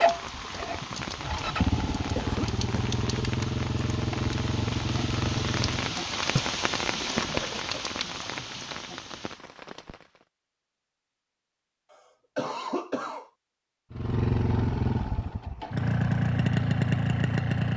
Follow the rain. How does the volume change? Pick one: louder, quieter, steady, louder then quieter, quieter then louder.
louder then quieter.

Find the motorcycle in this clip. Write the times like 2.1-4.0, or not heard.
0.0-6.0, 13.9-17.7.